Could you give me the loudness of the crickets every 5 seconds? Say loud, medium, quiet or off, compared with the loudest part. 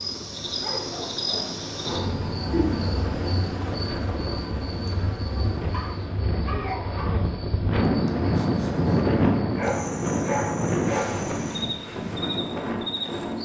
loud, medium, loud.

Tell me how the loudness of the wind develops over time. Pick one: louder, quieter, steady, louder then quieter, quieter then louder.
louder then quieter.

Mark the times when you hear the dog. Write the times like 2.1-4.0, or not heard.
0.4-2.2, 5.7-7.2, 9.6-11.2.